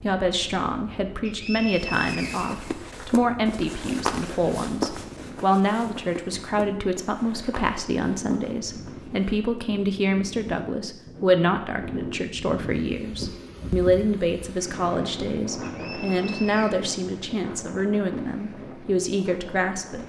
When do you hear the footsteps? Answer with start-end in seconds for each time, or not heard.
1.9-9.3.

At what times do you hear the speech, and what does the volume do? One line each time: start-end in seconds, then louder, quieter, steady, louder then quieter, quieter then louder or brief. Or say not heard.
0.0-20.0 steady.